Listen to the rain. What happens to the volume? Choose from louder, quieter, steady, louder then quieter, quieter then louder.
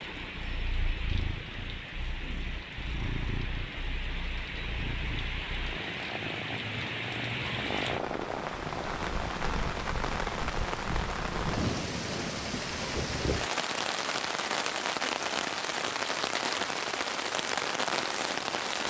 louder.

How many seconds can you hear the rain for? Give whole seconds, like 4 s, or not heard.
19 s.